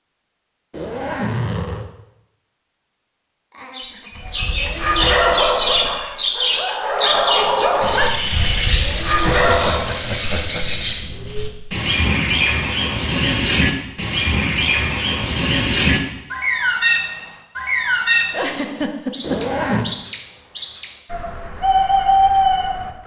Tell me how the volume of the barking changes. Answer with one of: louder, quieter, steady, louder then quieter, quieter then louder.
quieter then louder.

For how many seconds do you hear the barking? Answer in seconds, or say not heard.
6 s.